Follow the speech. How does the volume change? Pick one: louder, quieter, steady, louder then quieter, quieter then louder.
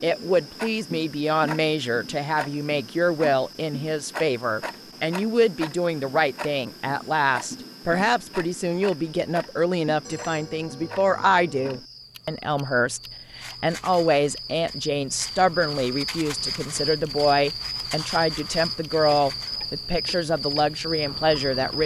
steady.